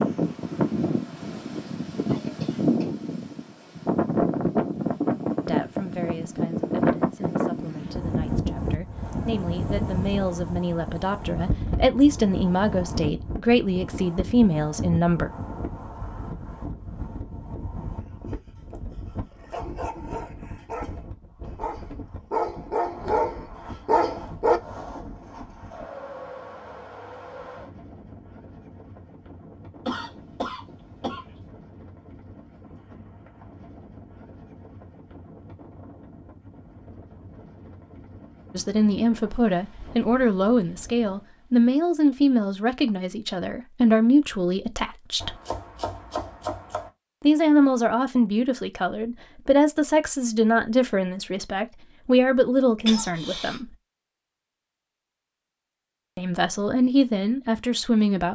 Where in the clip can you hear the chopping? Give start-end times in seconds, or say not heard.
45.2-46.9.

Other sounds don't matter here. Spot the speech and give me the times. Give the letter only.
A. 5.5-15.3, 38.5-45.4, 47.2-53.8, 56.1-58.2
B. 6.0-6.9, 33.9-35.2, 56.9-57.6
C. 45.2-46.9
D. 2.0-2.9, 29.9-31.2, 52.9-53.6
A.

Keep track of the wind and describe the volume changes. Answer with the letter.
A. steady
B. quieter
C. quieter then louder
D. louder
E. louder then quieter
B.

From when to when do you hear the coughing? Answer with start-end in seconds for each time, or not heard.
2.0-2.9, 29.9-31.2, 52.9-53.6.